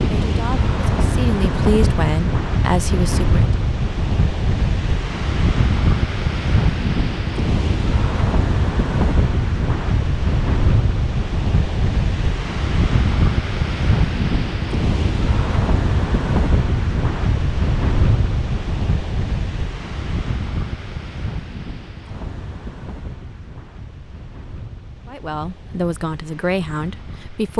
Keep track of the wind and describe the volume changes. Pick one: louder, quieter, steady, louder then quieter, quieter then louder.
quieter.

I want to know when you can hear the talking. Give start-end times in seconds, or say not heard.
0.1-3.5, 25.1-27.5.